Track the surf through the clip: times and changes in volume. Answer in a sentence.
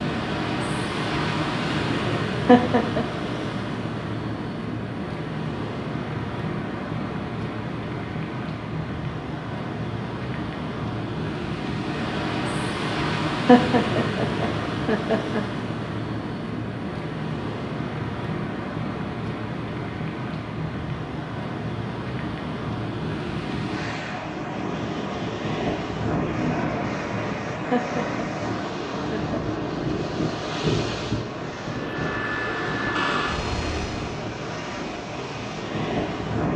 The surf can be heard from 0.0 to 36.5 s, at a steady volume.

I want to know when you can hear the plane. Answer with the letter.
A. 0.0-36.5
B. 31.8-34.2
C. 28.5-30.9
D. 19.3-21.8
B.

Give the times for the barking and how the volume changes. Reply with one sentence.
You can't hear the barking here.